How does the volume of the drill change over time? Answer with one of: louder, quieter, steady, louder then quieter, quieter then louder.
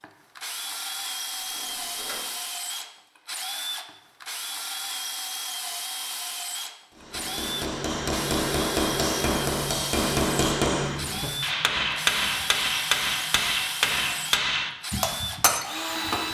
steady.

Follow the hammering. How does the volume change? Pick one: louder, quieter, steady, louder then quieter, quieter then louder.
steady.